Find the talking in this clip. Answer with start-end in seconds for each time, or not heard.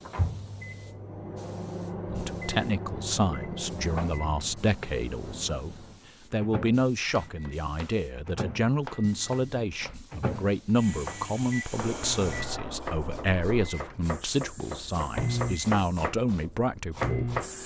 2.0-17.6.